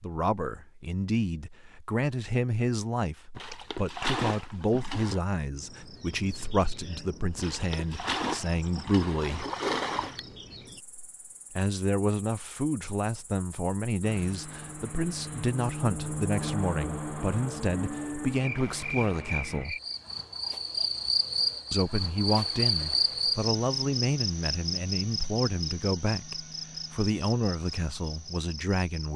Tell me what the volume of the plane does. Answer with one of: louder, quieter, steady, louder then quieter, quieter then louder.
louder then quieter.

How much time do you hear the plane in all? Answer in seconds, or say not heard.
6 s.